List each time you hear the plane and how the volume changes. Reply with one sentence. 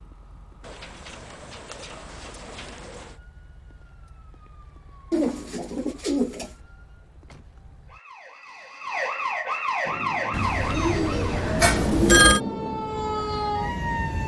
You can hear the plane from 9.8 to 14.2 s, getting louder then quieter.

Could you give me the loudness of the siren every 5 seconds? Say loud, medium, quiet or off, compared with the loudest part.
quiet, medium, loud.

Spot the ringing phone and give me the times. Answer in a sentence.
You can hear the ringing phone from 11.6 to 12.4 s.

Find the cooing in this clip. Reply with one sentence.
The cooing can be heard from 0.6 to 3.1 s, from 5.1 to 6.5 s and from 10.3 to 12.3 s.